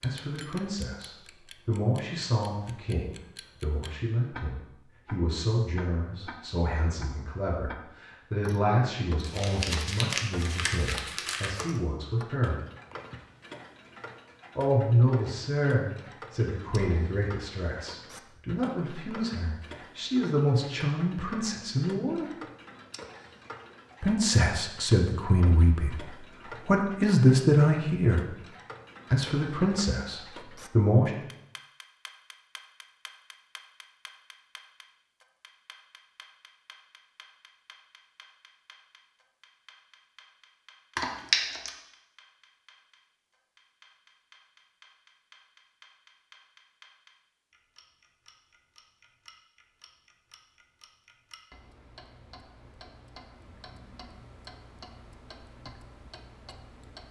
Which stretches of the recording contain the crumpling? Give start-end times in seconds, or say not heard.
9.2-11.7, 41.0-41.7.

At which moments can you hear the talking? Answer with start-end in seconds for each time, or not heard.
0.0-12.6, 14.6-22.3, 24.0-26.1, 26.6-28.4, 29.1-31.1.